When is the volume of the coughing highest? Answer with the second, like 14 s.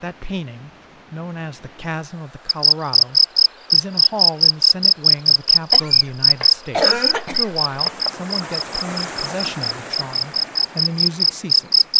7 s.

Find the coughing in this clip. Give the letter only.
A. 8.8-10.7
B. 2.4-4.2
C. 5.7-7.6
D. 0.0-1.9
C.